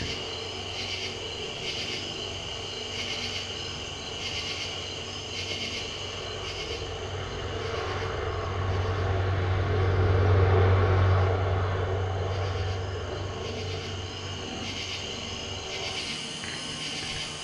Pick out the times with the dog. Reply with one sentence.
You can't hear the dog here.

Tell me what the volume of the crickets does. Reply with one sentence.
The loudness of the crickets goes down, then up.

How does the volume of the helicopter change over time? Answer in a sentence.
The loudness of the helicopter goes up, then down.